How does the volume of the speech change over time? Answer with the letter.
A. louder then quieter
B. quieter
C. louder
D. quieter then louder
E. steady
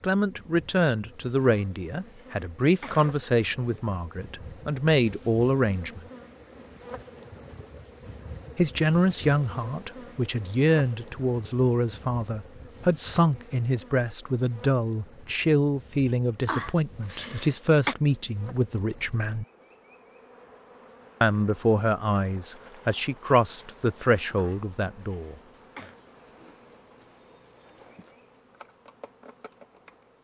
E.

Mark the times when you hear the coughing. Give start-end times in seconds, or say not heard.
1.4-3.1, 16.4-17.9, 24.4-25.9.